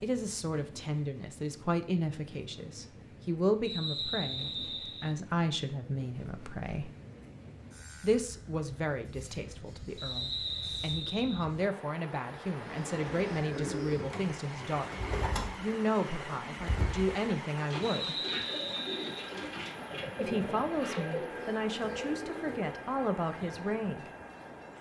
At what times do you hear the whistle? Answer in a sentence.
The whistle can be heard from 3.6 to 5.2 s, from 9.9 to 11.4 s and from 17.8 to 19.3 s.